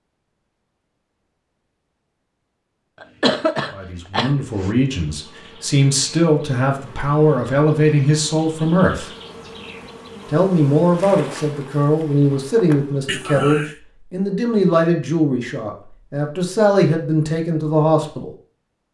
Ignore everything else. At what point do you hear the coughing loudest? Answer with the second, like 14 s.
3 s.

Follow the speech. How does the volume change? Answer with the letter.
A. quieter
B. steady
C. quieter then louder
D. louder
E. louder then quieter
B.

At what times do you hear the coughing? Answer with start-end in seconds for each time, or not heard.
3.0-4.7, 13.1-13.8.